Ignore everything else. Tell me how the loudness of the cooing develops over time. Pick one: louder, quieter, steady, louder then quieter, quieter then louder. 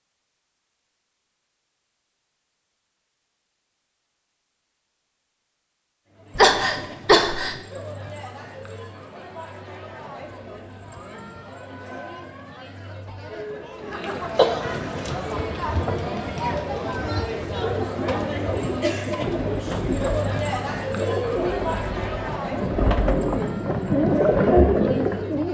louder.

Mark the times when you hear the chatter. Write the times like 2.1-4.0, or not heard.
6.1-25.5.